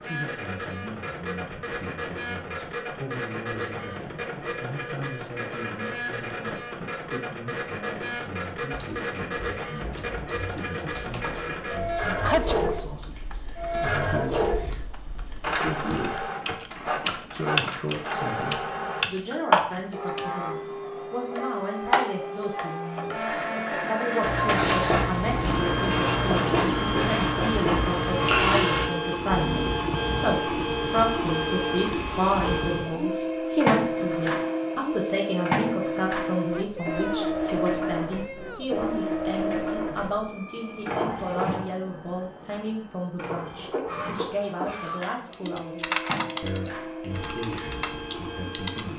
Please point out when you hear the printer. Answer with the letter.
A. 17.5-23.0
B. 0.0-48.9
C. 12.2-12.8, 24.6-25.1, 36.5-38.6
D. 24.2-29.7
B.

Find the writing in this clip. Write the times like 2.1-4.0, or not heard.
24.2-29.7.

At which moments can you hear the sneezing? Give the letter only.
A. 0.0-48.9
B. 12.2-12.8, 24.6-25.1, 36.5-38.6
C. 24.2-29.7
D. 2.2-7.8
B.